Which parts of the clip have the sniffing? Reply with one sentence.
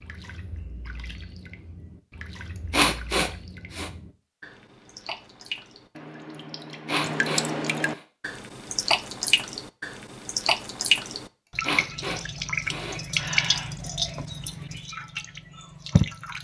You can hear the sniffing from 2.7 to 3.9 s, from 6.8 to 8.0 s and from 11.6 to 13.7 s.